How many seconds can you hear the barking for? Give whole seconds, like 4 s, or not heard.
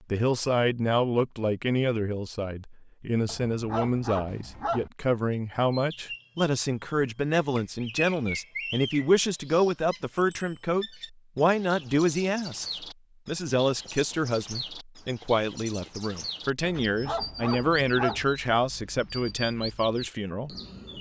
3 s.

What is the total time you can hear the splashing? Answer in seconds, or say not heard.
not heard.